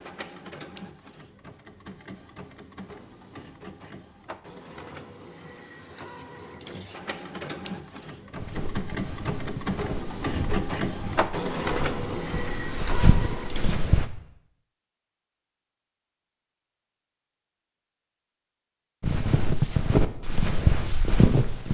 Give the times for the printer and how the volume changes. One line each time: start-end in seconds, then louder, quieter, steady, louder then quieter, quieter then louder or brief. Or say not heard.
0.0-13.8 louder.